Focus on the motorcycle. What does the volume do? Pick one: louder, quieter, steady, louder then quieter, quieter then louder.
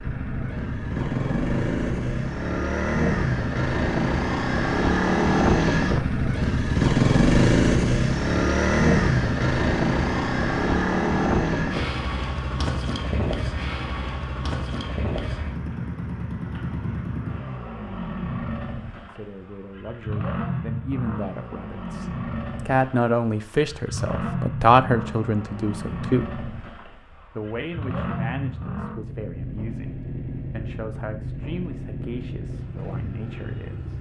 quieter.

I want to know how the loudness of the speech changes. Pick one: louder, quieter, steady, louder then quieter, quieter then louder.
louder then quieter.